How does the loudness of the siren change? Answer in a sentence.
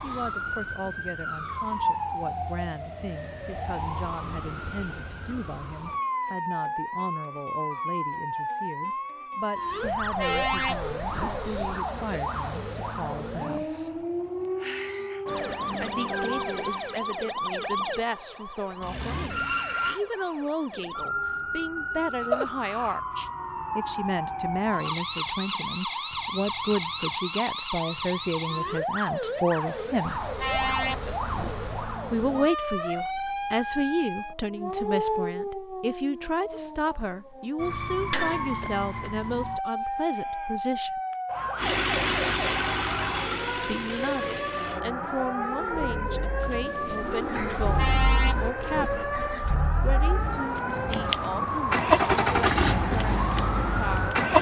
The volume of the siren stays about the same.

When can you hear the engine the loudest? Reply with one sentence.
The loudest moment of the engine is at 52 seconds.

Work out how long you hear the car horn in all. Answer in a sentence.
The car horn can be heard for 6 seconds in total.